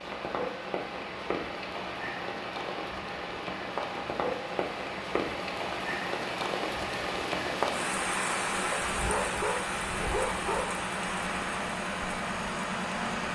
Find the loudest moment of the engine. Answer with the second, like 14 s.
13 s.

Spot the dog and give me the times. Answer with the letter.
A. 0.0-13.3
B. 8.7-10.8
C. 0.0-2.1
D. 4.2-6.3
B.